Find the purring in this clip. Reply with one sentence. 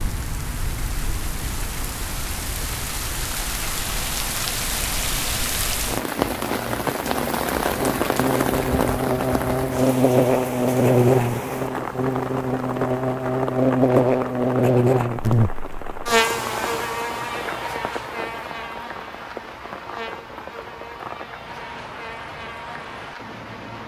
The purring can't be heard in this clip.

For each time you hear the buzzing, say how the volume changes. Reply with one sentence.
You can hear the buzzing from 7.8 to 23.8 s, getting quieter.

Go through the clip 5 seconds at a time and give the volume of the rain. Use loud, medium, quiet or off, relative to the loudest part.
medium, loud, medium, medium, quiet.